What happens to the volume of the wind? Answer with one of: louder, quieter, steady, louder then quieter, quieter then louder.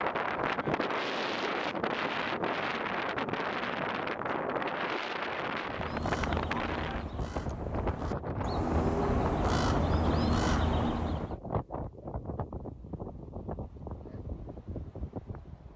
quieter.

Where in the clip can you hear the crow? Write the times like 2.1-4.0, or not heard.
5.7-11.3.